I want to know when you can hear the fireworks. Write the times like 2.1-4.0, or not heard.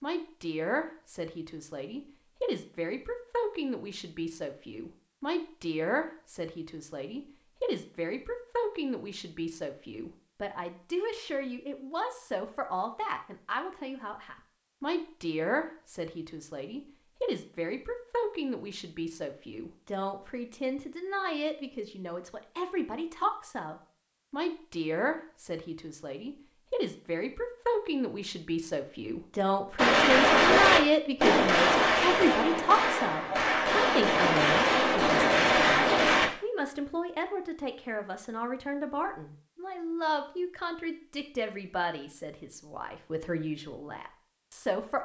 29.8-36.3.